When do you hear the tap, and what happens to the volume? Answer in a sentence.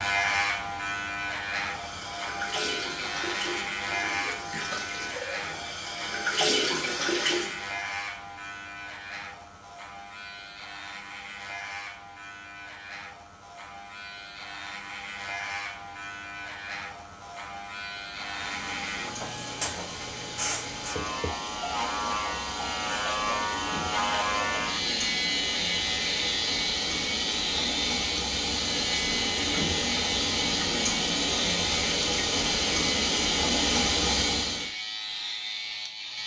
The tap can be heard from 1.6 to 7.8 s, getting louder; and from 18.1 to 34.7 s, getting louder.